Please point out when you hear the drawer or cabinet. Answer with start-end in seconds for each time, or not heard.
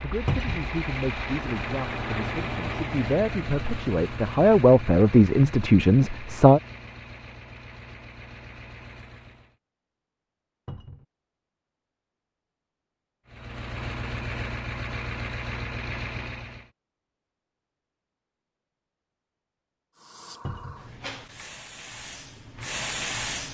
0.2-0.7, 10.7-11.1, 20.4-20.9.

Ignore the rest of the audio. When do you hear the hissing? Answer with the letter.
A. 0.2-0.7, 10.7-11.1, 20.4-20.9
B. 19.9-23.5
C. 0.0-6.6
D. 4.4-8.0
B.